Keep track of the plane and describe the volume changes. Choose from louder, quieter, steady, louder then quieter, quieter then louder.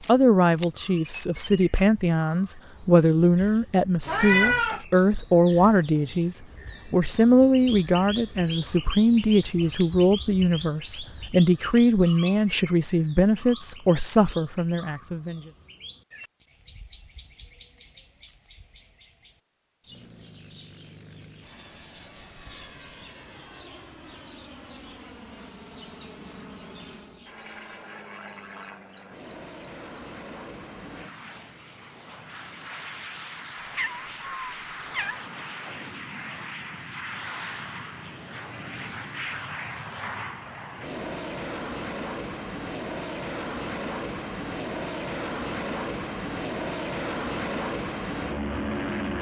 louder.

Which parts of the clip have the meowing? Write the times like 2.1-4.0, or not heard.
4.0-4.8, 33.8-35.2.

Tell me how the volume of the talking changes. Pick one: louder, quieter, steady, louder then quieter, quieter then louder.
steady.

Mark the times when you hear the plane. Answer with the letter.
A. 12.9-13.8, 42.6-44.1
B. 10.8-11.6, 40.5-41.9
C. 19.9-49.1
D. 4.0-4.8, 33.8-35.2
C.